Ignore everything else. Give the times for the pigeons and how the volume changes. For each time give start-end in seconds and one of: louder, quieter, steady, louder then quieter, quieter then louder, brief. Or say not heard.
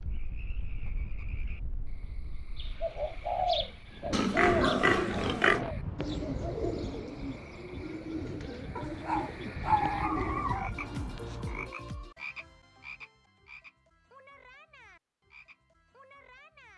2.5-11.8 quieter.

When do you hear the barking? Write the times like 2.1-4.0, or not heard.
8.8-10.7.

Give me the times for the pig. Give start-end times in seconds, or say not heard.
4.1-5.7.